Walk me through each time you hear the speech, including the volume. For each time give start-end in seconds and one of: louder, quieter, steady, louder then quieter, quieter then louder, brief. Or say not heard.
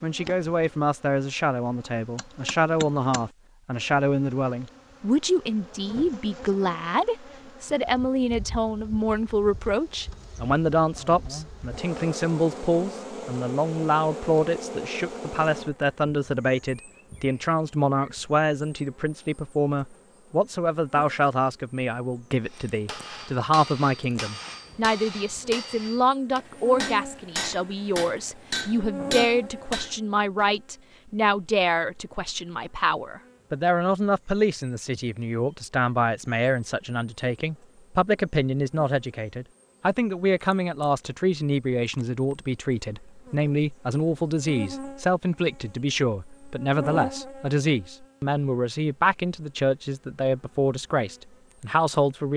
0.0-52.3 steady.